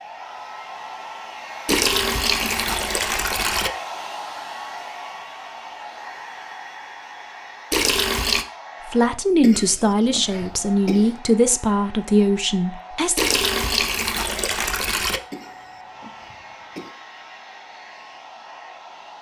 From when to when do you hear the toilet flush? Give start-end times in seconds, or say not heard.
1.6-3.7, 7.7-8.4, 13.2-15.2.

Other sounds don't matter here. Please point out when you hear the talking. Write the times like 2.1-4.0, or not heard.
8.8-13.2.